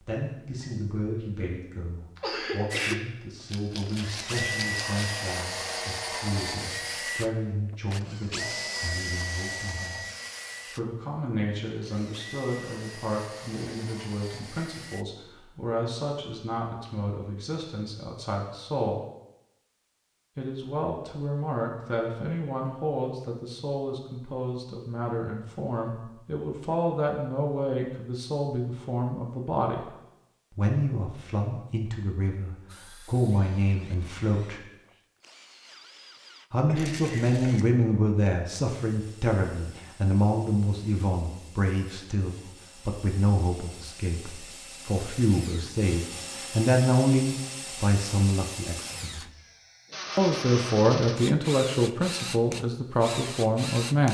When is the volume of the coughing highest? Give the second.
3 s.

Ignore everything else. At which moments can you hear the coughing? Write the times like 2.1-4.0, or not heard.
2.1-3.0, 36.6-37.6.